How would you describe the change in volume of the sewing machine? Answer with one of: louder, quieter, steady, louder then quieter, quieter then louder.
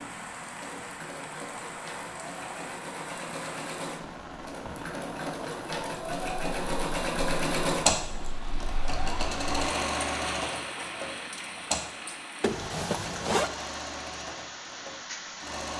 louder then quieter.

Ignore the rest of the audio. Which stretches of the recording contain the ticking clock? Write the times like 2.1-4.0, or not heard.
not heard.